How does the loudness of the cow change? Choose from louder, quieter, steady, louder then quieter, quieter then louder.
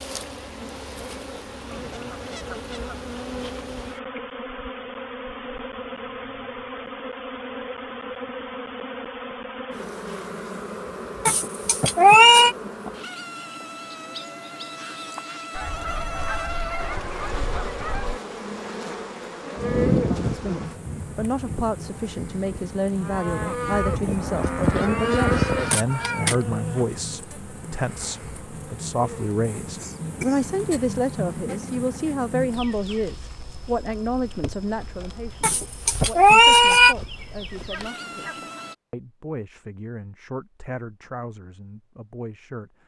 quieter then louder.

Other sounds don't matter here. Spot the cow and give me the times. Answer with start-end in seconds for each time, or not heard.
19.6-25.7.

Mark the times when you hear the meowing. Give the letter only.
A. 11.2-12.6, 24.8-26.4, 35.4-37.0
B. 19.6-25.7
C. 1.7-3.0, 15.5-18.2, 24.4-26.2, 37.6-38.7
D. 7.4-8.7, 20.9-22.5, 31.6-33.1
A.